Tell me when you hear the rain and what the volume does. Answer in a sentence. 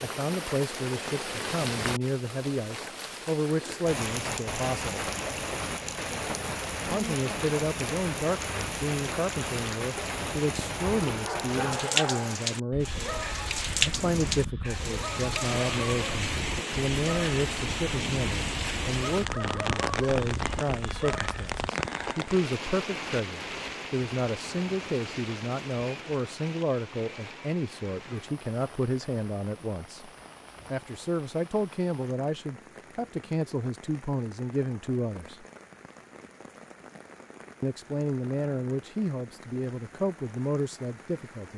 You can hear the rain from 0.0 to 41.5 s, getting quieter.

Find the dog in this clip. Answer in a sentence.
You can hear the dog from 10.8 to 21.8 s.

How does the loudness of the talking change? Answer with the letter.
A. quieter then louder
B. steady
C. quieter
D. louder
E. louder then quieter
B.